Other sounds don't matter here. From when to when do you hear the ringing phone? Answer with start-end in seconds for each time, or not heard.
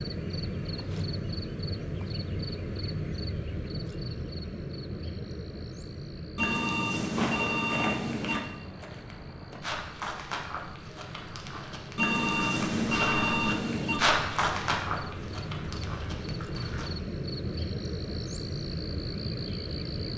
6.3-8.4, 11.9-14.0.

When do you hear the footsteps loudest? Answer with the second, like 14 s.
14 s.